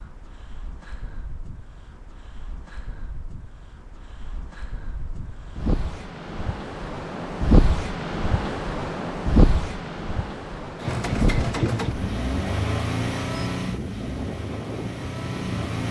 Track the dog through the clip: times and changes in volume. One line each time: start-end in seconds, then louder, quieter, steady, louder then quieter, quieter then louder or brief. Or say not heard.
not heard.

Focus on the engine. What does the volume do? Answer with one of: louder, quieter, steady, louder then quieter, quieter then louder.
quieter.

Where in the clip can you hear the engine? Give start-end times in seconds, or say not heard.
10.8-15.8.